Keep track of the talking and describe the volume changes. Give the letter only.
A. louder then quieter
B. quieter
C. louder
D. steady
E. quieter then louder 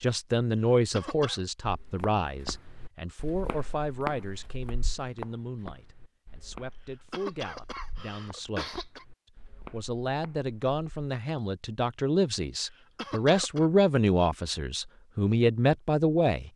E.